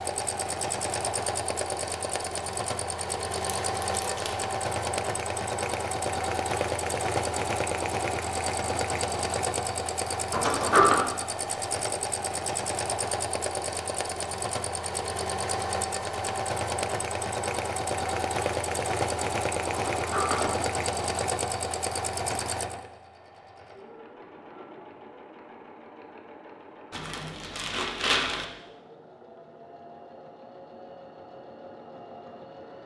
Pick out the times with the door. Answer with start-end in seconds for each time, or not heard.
10.3-11.0, 19.9-20.6.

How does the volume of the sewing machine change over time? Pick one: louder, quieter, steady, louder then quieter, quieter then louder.
quieter.